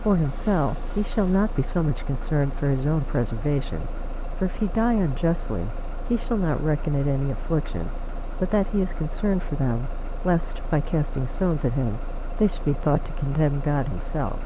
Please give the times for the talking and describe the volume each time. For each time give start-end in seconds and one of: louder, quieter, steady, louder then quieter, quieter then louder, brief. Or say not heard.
0.0-14.4 steady.